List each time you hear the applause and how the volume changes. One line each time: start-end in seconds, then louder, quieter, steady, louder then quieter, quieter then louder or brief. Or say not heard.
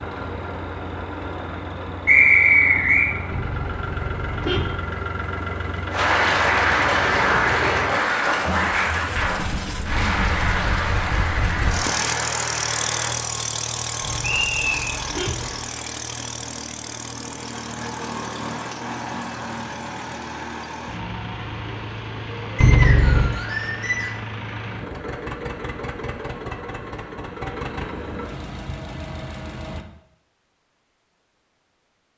5.9-13.2 quieter.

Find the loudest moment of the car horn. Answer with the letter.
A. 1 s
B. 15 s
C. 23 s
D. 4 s
C.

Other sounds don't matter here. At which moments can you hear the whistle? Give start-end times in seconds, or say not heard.
2.0-3.0, 14.2-14.9, 22.6-24.1.